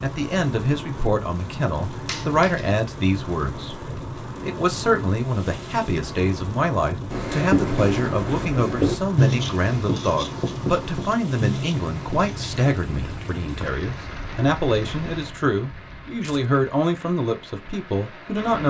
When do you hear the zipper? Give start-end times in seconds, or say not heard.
not heard.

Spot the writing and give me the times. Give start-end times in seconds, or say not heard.
7.1-12.5.